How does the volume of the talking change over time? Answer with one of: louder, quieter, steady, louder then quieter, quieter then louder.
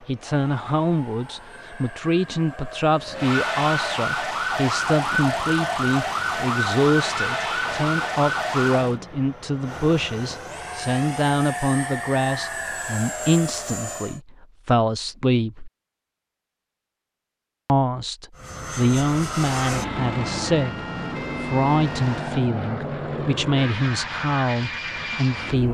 steady.